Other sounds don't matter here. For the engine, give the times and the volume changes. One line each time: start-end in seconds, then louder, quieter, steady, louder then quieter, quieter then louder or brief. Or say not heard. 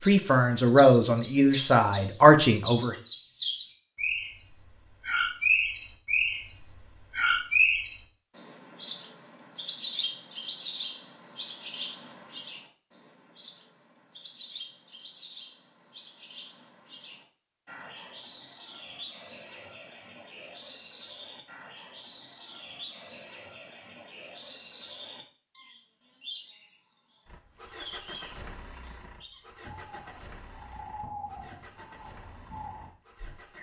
27.2-33.5 quieter.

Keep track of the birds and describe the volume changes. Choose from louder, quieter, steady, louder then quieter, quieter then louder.
quieter.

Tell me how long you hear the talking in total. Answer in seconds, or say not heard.
3 s.